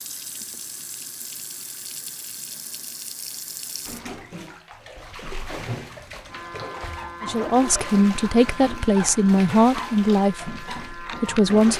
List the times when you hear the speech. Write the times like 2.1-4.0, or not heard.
7.2-11.7.